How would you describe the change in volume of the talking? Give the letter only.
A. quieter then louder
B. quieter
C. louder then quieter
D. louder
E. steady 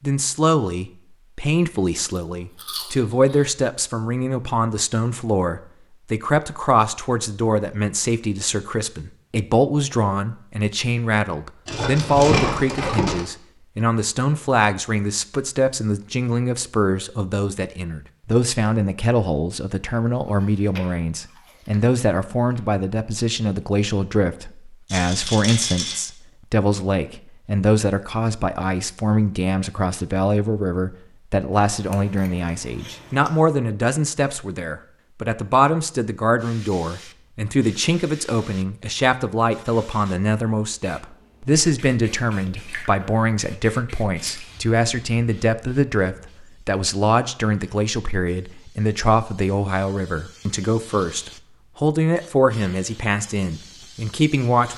E.